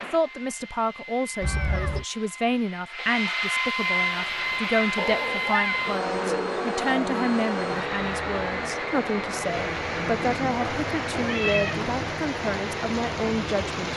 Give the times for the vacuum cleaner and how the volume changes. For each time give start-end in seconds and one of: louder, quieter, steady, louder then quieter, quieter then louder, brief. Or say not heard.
0.0-13.9 louder then quieter.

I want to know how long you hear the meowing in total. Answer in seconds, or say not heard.
3 s.